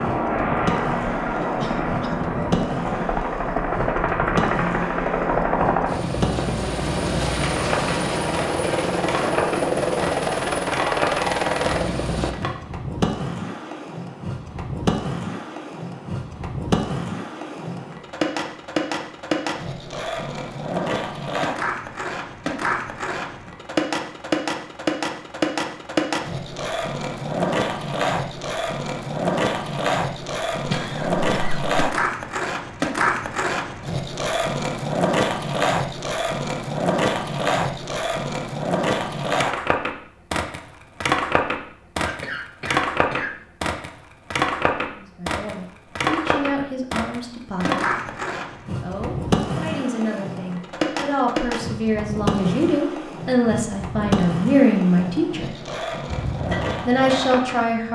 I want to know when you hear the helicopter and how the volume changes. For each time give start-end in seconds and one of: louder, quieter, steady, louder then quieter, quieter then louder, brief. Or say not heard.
0.0-12.3 steady
56.0-57.9 brief.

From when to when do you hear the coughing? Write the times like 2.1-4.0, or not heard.
1.4-2.2, 30.6-31.7, 42.0-43.5.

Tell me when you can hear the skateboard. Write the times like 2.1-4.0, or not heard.
0.0-57.9.